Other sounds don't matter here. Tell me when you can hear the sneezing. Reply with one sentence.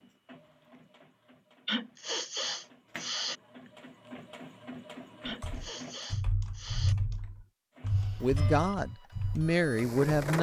You can hear the sneezing from 1.6 to 3.4 s and from 5.2 to 7.0 s.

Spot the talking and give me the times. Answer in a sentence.
The talking can be heard from 8.2 to 10.3 s.